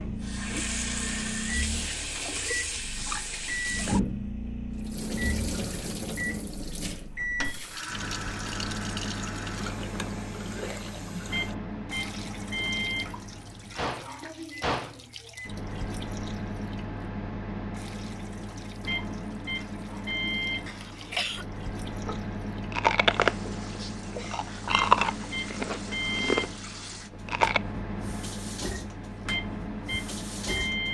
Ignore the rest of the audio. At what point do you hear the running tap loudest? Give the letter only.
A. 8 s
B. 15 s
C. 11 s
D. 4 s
D.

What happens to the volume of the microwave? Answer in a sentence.
The loudness of the microwave stays about the same.